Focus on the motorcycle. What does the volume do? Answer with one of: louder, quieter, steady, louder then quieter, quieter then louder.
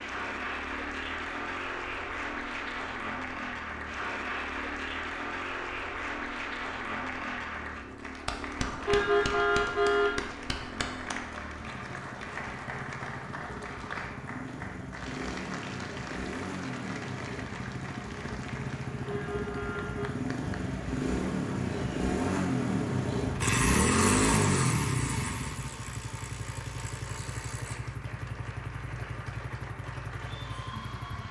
louder then quieter.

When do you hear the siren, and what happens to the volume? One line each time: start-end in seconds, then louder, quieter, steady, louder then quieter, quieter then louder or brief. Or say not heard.
not heard.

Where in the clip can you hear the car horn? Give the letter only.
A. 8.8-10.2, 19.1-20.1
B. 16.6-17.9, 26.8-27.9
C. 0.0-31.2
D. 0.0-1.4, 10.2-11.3
A.